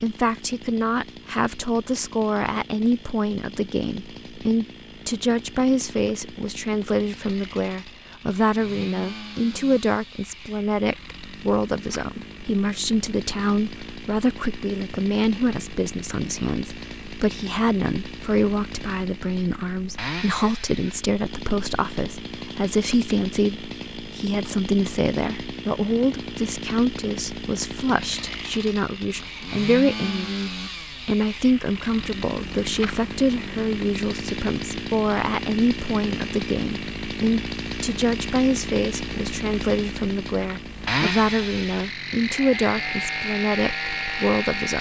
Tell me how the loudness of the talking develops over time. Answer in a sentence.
The loudness of the talking stays about the same.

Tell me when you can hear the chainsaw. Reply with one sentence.
The chainsaw can be heard from 0.0 to 44.7 s.